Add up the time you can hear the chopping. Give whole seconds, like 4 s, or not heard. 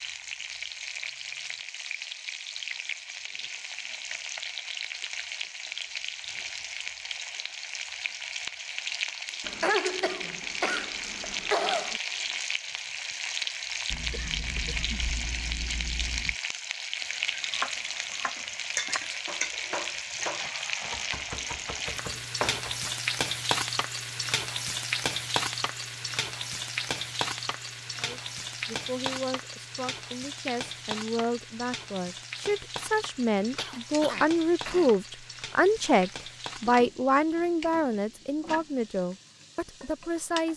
6 s.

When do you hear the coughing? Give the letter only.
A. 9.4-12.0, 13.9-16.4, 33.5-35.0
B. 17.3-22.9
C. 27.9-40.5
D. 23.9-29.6
A.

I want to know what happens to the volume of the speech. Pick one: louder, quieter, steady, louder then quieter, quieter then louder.
louder then quieter.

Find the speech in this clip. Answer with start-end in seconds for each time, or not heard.
27.9-40.5.